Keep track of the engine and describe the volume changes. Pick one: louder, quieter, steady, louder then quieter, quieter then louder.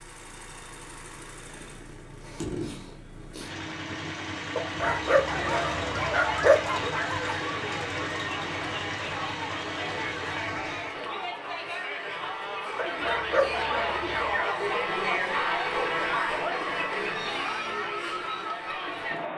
louder.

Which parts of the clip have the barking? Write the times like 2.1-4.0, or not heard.
4.5-7.4, 12.8-14.4.